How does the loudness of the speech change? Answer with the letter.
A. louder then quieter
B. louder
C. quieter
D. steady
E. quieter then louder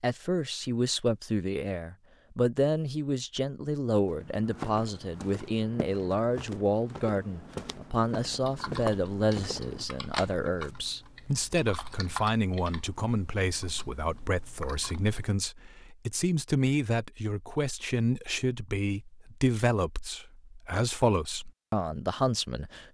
D.